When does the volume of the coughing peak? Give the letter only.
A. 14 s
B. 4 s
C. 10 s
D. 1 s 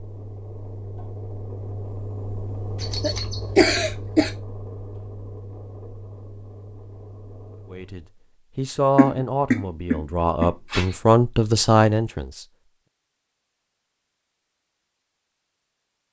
B.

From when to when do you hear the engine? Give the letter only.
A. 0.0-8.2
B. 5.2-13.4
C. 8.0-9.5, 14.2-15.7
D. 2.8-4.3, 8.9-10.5
A.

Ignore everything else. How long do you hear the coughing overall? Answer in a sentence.
You can hear the coughing for 3 seconds altogether.